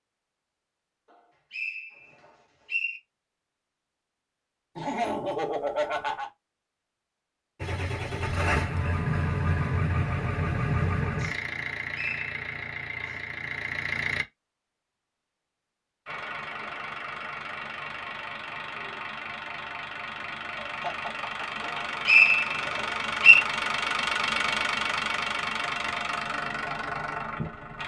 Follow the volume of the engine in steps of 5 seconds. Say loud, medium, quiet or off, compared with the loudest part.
off, loud, loud, medium, loud, loud.